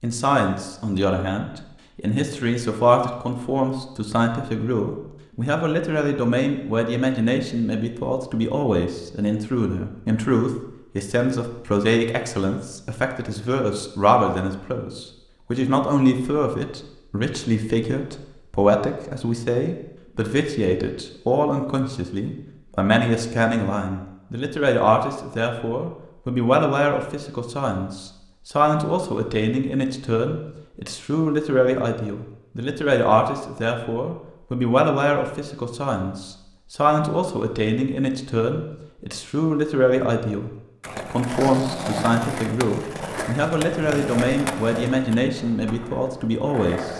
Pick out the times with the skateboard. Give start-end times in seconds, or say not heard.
40.8-46.9.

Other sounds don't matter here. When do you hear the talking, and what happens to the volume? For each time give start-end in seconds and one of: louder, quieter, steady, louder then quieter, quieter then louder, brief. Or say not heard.
0.0-46.9 steady.